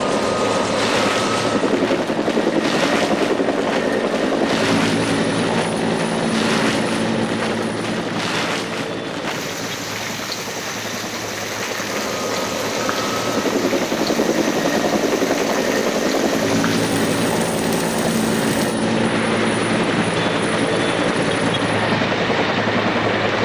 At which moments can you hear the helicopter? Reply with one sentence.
You can hear the helicopter from 0.0 to 23.4 s.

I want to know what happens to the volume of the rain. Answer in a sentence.
The loudness of the rain stays about the same.